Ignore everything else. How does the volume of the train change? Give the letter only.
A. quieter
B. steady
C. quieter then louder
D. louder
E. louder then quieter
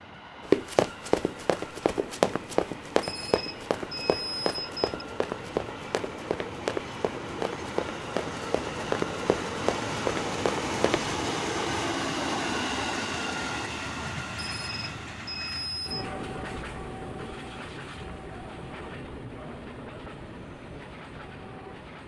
E.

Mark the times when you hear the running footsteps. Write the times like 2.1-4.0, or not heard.
0.5-11.1.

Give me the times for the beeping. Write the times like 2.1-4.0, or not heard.
3.0-4.8, 14.3-16.1.